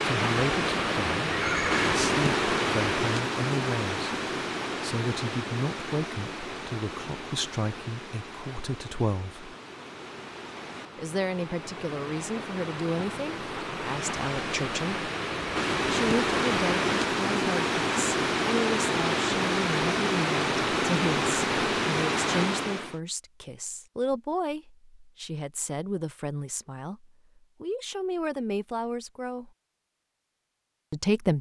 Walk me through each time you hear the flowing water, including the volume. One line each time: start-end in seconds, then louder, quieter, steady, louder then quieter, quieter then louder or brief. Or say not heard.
0.0-23.0 quieter then louder.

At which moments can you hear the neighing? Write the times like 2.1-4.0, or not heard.
1.3-2.0.